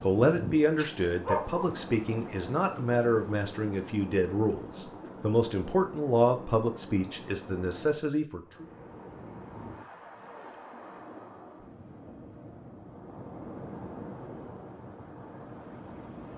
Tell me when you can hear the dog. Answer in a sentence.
You can hear the dog from 0.8 to 1.7 s.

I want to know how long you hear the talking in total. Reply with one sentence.
The talking can be heard for 9 seconds in total.